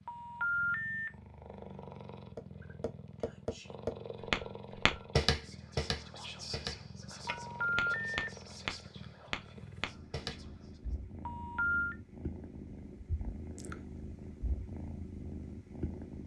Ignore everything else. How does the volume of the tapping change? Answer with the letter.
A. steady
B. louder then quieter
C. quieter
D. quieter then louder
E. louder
B.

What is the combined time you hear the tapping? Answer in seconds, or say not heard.
8 s.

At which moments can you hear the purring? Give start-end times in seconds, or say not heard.
0.0-16.2.